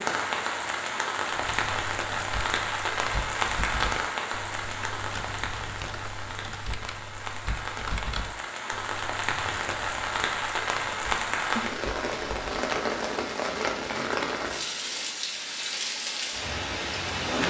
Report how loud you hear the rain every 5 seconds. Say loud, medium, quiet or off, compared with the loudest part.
loud, medium, loud, loud.